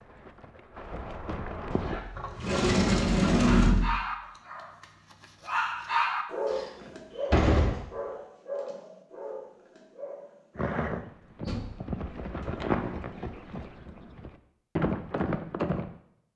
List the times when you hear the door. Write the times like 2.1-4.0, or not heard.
1.7-3.9, 6.5-7.8, 11.4-12.7.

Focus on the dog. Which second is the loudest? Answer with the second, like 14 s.
6 s.